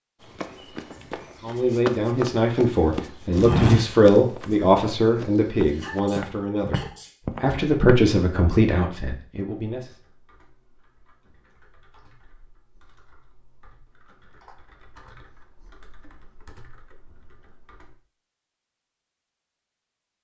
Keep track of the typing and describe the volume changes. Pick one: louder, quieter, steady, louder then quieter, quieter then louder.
louder.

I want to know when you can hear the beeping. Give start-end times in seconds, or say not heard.
not heard.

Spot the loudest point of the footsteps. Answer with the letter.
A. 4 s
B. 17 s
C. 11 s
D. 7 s
A.